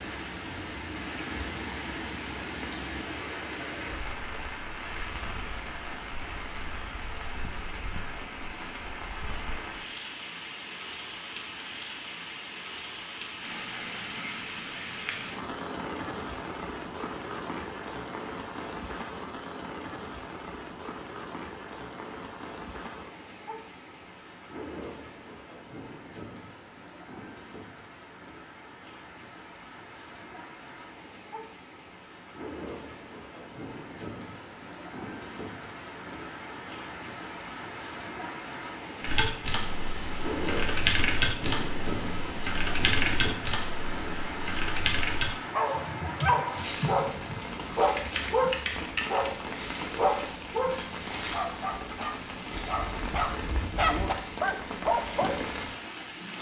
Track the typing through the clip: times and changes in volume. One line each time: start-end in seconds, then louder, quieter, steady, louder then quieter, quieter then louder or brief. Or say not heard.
39.0-49.4 quieter.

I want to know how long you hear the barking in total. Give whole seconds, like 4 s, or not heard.
10 s.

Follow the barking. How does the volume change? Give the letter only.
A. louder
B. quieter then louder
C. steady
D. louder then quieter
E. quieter
B.